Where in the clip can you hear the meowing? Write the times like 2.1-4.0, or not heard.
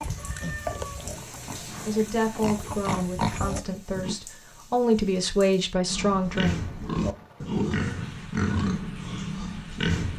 0.1-1.1.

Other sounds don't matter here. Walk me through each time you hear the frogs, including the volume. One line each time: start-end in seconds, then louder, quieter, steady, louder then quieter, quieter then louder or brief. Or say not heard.
not heard.